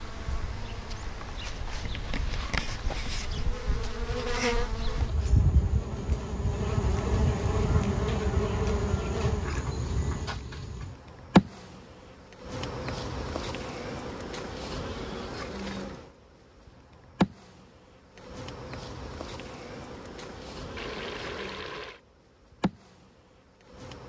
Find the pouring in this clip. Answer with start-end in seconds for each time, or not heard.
20.8-22.0.